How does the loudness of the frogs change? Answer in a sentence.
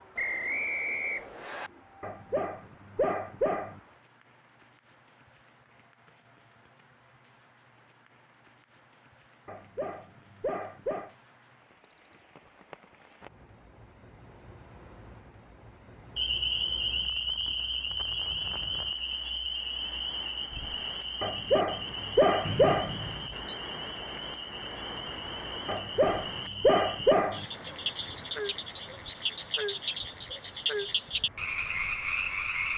The volume of the frogs goes down, then up.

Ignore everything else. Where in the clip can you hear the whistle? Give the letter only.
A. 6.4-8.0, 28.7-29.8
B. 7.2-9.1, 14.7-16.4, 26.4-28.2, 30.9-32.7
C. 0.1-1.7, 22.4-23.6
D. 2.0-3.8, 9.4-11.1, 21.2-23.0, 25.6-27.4
C.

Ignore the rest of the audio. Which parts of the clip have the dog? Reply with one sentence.
The dog can be heard from 2.0 to 3.8 s, from 9.4 to 11.1 s, from 21.2 to 23.0 s and from 25.6 to 27.4 s.